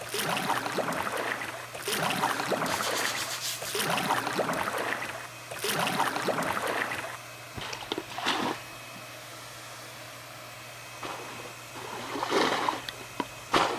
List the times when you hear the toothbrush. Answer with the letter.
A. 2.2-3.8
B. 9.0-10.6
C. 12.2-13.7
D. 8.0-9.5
A.